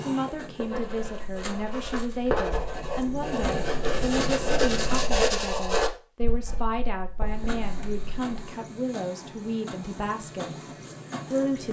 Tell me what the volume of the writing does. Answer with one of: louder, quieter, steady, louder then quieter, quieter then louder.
louder then quieter.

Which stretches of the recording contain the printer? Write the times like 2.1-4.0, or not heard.
0.0-5.2, 7.2-11.6.